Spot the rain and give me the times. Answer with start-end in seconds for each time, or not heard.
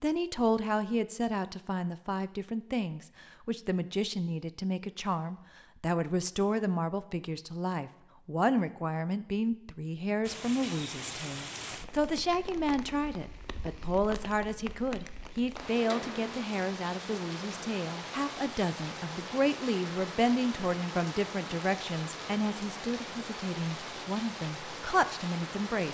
10.2-25.8.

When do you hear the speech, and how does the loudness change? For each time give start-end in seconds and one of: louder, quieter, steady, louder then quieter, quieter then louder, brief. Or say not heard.
0.0-25.8 steady.